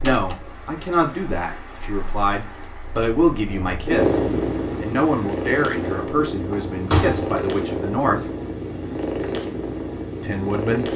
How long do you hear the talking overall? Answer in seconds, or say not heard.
9 s.